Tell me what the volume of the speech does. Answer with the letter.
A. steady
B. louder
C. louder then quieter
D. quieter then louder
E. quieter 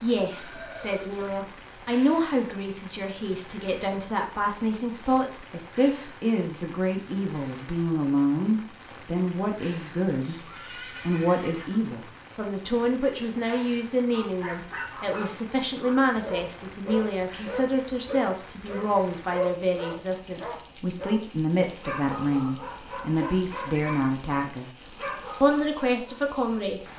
A.